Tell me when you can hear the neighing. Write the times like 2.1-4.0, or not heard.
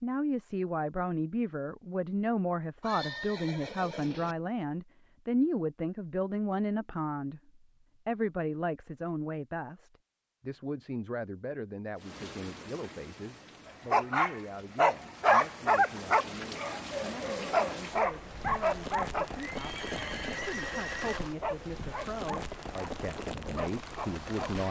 2.8-4.3, 19.4-21.2.